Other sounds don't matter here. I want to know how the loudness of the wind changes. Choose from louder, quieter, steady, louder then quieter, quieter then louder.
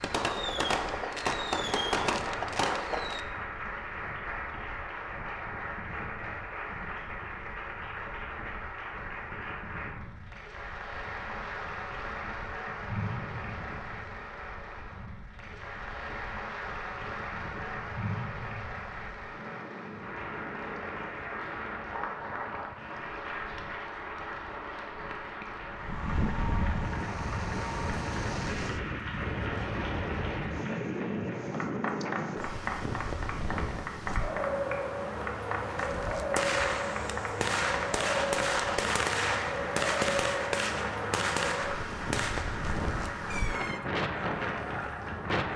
louder.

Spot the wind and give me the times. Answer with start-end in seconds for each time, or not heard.
0.0-45.5.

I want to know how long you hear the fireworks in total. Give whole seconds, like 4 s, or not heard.
11 s.